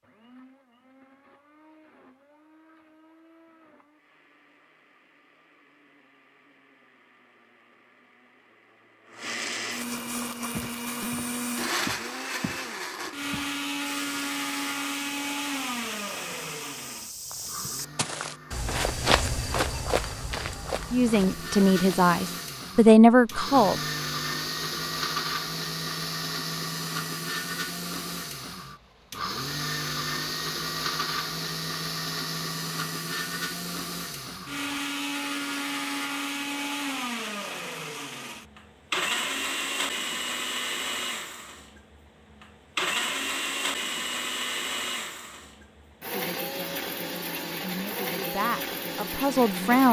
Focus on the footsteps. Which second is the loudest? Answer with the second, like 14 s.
19 s.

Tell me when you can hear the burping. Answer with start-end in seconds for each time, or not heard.
not heard.